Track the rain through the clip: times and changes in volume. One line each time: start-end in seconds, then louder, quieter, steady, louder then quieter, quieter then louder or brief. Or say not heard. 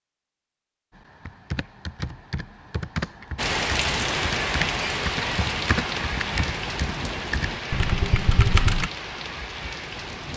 3.4-10.3 quieter.